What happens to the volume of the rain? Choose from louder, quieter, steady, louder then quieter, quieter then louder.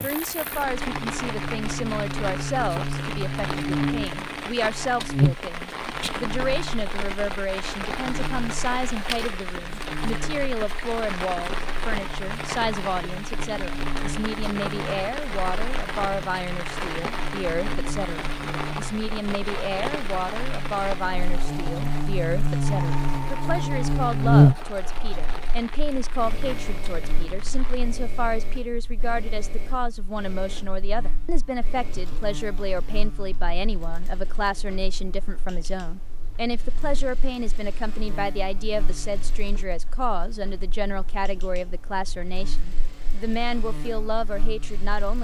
quieter.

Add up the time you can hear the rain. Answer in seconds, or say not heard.
28 s.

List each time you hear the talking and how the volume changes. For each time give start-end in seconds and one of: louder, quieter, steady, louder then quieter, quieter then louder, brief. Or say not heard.
0.0-45.1 steady.